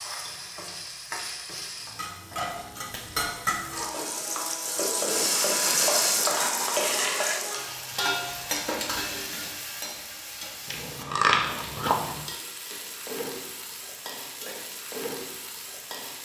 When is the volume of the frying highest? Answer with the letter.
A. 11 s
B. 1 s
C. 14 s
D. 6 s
D.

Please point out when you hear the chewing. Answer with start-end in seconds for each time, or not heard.
10.7-12.2.